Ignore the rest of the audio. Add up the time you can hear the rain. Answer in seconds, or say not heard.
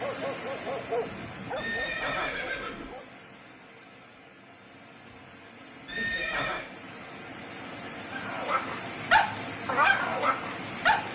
11 s.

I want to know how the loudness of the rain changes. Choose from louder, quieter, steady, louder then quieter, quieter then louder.
quieter then louder.